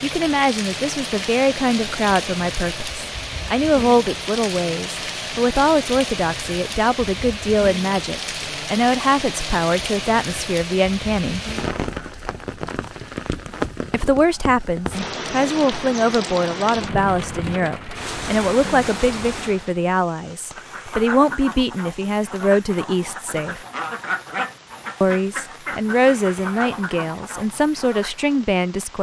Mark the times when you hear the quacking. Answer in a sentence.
The quacking can be heard from 20.5 to 28.4 s.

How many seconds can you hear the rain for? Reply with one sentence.
You can hear the rain for 29 seconds altogether.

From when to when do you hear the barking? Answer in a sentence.
The barking can't be heard in this clip.